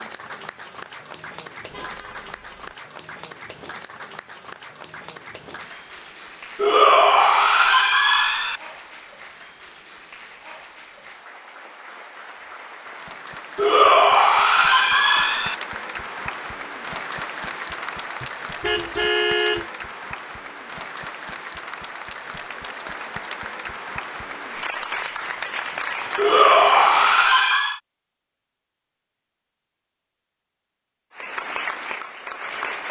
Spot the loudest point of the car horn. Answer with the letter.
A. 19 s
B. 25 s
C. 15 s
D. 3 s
A.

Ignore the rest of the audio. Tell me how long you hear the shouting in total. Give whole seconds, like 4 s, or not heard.
6 s.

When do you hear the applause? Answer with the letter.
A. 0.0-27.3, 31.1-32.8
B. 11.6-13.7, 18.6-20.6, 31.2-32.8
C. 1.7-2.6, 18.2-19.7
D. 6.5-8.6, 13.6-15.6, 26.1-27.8
A.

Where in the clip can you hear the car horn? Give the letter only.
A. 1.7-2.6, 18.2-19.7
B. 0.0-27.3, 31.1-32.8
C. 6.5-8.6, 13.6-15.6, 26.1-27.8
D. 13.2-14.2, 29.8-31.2
A.